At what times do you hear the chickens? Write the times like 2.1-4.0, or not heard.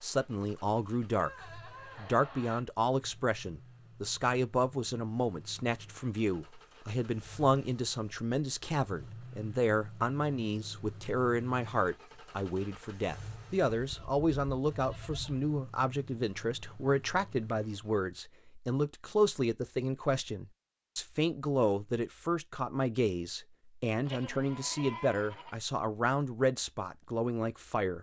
not heard.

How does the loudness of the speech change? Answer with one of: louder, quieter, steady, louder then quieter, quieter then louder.
steady.